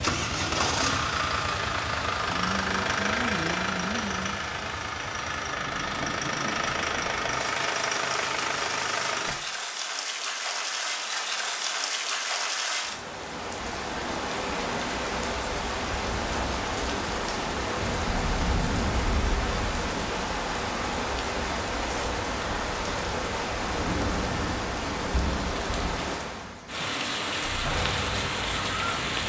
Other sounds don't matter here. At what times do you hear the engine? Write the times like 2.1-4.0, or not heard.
0.0-9.3, 27.6-29.2.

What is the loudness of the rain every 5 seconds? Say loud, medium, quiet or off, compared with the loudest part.
medium, medium, loud, loud, loud, loud.